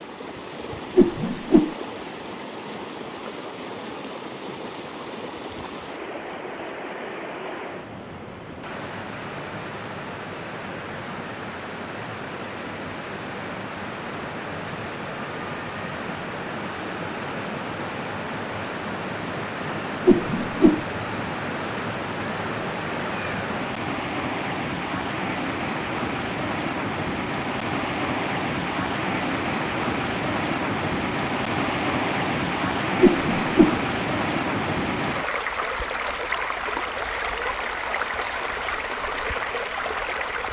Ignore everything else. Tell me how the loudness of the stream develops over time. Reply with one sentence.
The loudness of the stream goes up.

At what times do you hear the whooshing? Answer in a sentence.
You can hear the whooshing from 0.9 to 1.8 s, from 20.1 to 20.9 s and from 33.0 to 33.8 s.